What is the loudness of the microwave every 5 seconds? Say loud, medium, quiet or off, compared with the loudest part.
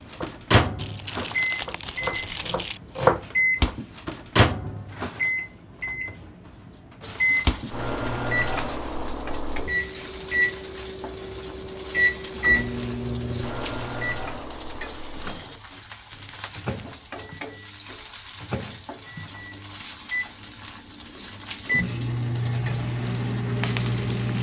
loud, loud, loud, quiet, loud.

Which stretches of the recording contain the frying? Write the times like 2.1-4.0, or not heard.
7.0-24.3.